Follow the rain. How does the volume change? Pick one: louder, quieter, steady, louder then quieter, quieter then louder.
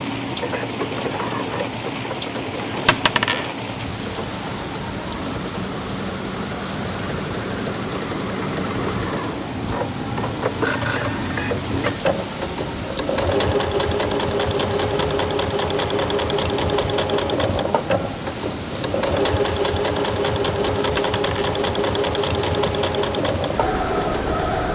steady.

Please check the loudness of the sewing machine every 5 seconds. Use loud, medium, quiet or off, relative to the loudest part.
medium, medium, loud, loud, loud.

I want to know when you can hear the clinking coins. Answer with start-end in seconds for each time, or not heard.
2.9-3.5, 20.9-21.6.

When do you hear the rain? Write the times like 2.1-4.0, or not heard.
0.0-24.7.